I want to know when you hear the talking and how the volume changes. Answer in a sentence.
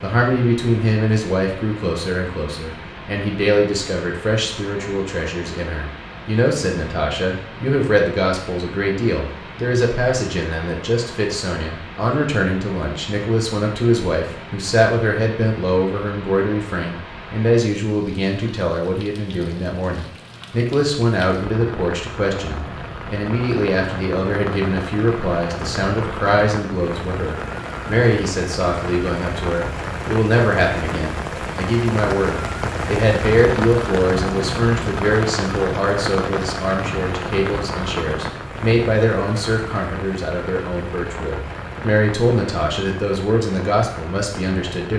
The talking can be heard from 0.0 to 44.9 s, at a steady volume.